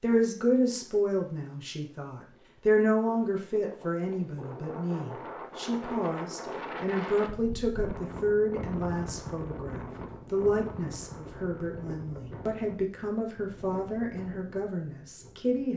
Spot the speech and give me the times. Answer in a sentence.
You can hear the speech from 0.0 to 15.7 s.